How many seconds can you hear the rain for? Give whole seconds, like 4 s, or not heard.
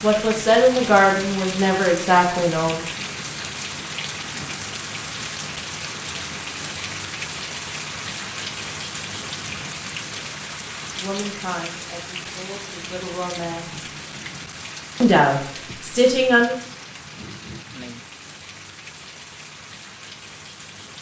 21 s.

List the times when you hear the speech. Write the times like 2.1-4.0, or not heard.
0.0-2.8, 10.9-13.8, 15.0-16.6.